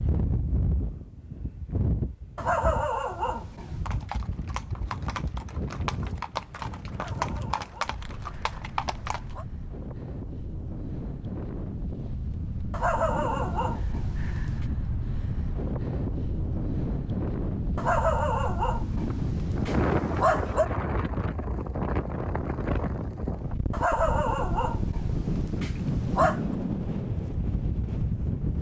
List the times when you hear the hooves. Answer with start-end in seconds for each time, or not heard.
3.9-9.3.